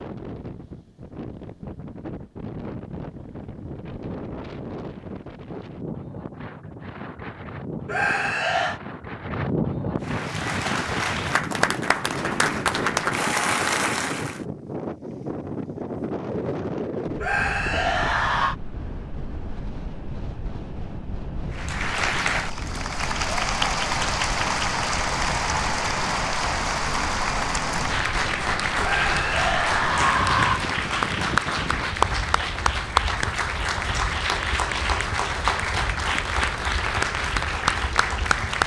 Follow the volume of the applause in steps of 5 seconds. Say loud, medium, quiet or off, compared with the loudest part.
off, off, loud, off, loud, loud, loud, loud.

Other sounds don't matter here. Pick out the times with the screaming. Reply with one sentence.
You can hear the screaming from 7.8 to 8.8 s, from 17.2 to 18.6 s and from 28.8 to 30.6 s.